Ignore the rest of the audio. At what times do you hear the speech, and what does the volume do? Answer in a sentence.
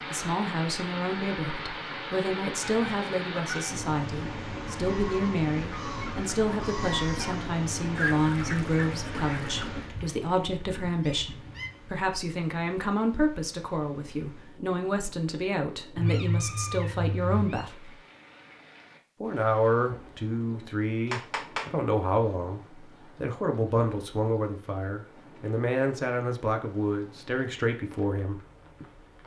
The speech can be heard from 0.1 to 17.9 s, at a steady volume; and from 19.2 to 28.4 s, at a steady volume.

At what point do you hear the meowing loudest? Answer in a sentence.
The loudest moment of the meowing is at 16 seconds.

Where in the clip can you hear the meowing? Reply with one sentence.
You can hear the meowing from 2.6 to 3.8 s, from 15.9 to 17.6 s and from 21.1 to 21.6 s.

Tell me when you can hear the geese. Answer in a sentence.
The geese can be heard from 4.8 to 11.7 s.